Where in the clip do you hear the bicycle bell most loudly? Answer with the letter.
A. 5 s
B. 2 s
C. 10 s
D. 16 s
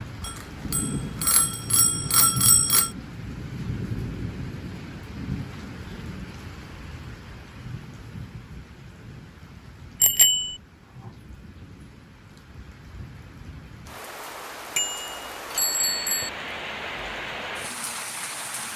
C.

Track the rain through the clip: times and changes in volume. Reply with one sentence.
You can hear the rain from 0.0 to 18.7 s, getting quieter then louder.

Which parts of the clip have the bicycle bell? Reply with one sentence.
You can hear the bicycle bell from 0.2 to 2.9 s, from 10.0 to 10.6 s and from 14.8 to 16.3 s.